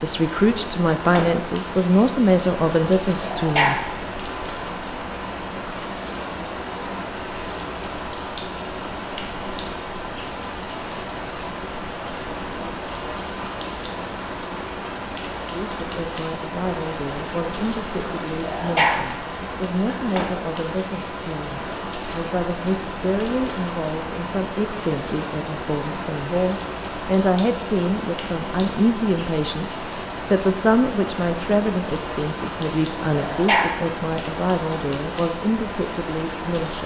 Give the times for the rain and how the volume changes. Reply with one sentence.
You can hear the rain from 0.0 to 36.8 s, at a steady volume.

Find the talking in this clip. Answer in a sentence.
The talking can be heard from 0.0 to 3.8 s and from 15.3 to 36.8 s.